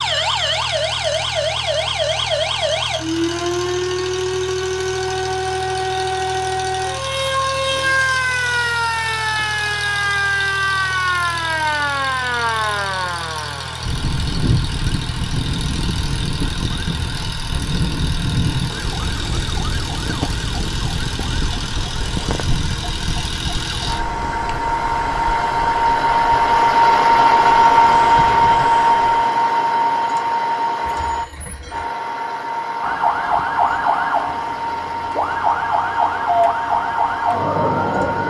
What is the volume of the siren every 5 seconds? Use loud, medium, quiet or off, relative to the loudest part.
loud, loud, loud, medium, medium, quiet, loud, loud.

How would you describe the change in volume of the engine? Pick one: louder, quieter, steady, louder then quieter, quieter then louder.
louder then quieter.